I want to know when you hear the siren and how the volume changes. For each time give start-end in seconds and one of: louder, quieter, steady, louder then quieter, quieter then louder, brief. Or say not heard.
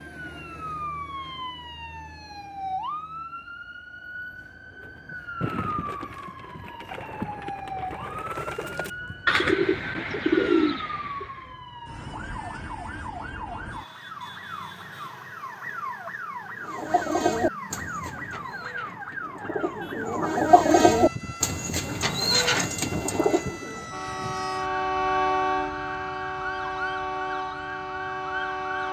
0.0-28.8 steady.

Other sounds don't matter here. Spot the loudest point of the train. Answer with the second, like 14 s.
25 s.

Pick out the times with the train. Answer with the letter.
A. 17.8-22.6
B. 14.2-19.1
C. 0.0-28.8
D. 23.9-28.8
D.